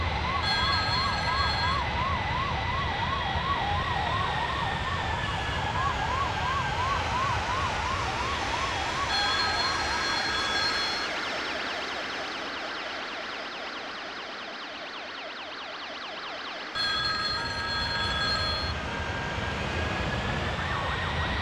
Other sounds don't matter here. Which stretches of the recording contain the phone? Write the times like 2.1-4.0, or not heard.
0.4-1.9, 9.1-11.1, 16.8-18.8.